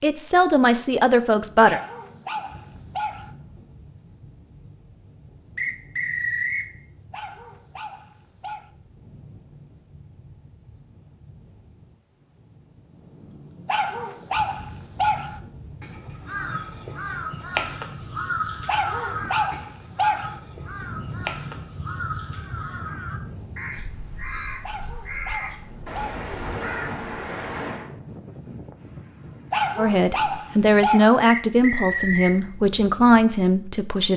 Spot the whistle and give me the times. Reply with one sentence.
You can hear the whistle from 5.5 to 6.7 s and from 31.2 to 32.4 s.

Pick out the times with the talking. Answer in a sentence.
You can hear the talking from 0.0 to 1.8 s and from 29.8 to 34.1 s.